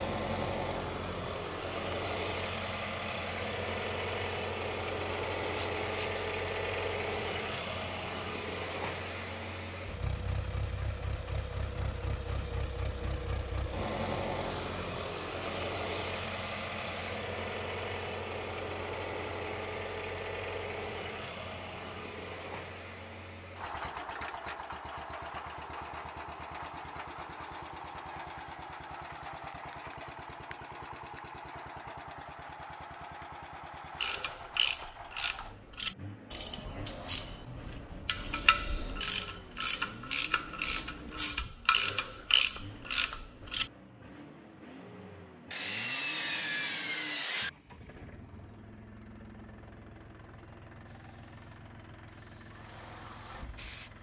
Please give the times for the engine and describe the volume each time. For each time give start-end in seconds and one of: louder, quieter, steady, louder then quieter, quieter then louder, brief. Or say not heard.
0.0-53.9 quieter.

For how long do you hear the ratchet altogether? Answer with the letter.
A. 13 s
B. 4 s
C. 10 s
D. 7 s
C.